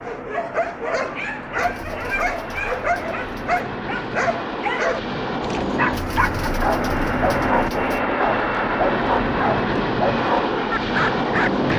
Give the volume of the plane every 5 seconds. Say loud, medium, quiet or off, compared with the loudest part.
medium, loud, loud.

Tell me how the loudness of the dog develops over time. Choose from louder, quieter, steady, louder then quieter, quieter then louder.
steady.